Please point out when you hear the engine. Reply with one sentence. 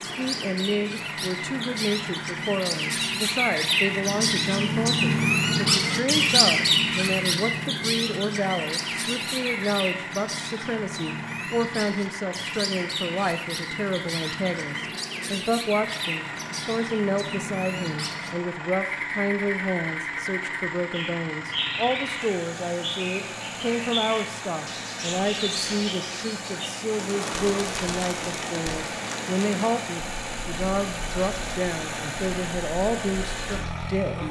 The engine can be heard from 0.0 to 34.2 s.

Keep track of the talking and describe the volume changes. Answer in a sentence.
The volume of the talking stays about the same.